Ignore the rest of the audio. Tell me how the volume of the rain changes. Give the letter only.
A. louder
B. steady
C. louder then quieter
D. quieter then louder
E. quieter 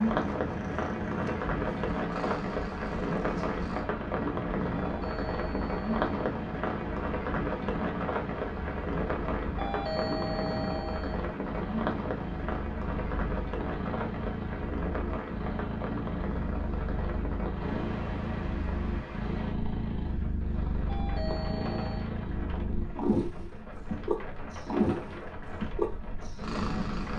E.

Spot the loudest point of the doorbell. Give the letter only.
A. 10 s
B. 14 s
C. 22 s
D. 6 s
A.